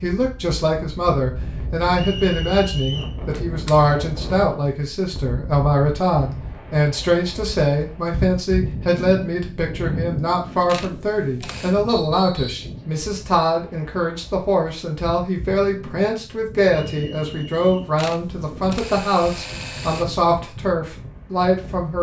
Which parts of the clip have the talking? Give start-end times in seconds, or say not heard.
0.0-21.9.